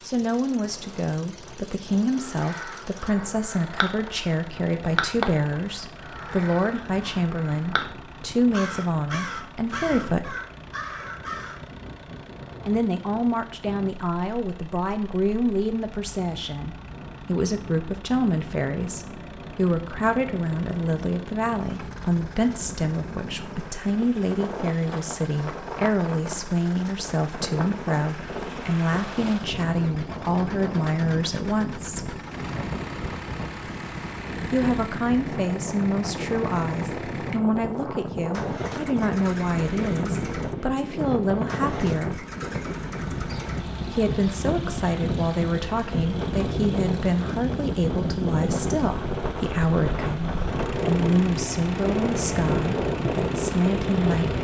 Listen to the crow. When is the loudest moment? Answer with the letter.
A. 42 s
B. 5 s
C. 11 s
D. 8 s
B.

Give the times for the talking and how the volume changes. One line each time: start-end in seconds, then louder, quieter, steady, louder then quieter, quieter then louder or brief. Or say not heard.
0.1-10.3 steady
12.7-32.2 steady
34.4-42.2 steady
43.9-54.3 steady.